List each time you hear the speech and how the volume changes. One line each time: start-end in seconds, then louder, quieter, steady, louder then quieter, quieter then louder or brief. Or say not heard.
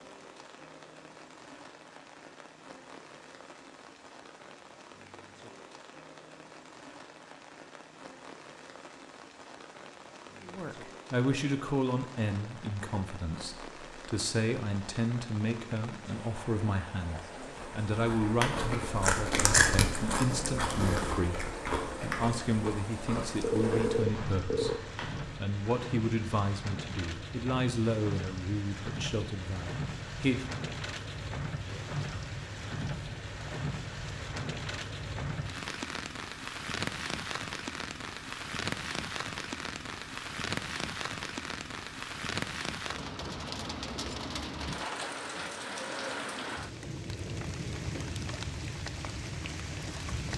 10.4-30.4 steady.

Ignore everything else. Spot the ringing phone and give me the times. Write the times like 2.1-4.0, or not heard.
23.4-24.8.